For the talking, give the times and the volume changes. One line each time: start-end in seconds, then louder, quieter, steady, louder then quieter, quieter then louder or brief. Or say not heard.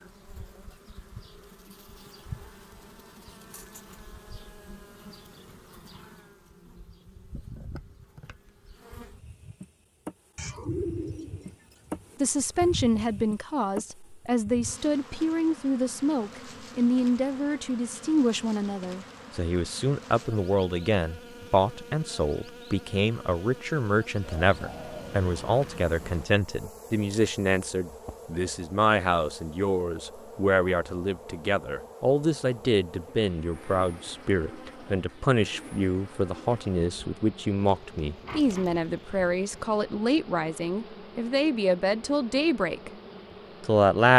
12.2-42.9 steady
43.6-44.1 brief.